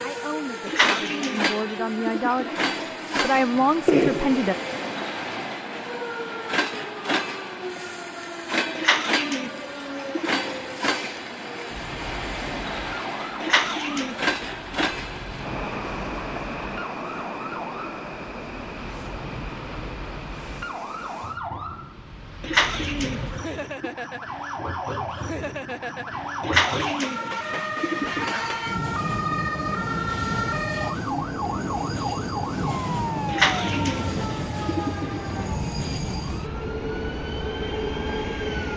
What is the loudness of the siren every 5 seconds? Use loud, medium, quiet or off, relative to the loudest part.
medium, medium, medium, medium, medium, loud, loud, medium.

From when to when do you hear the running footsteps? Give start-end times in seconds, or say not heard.
not heard.